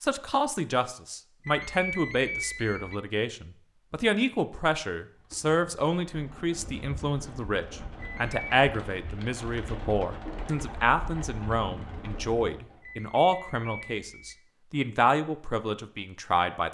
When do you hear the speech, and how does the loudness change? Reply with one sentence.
The speech can be heard from 0.0 to 16.6 s, at a steady volume.